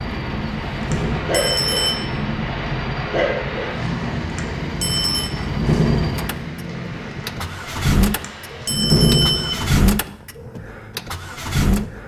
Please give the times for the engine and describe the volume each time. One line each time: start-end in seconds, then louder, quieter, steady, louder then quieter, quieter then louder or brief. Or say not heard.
0.0-12.0 louder.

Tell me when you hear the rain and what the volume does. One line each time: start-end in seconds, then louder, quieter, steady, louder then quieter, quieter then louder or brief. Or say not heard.
0.0-8.8 quieter.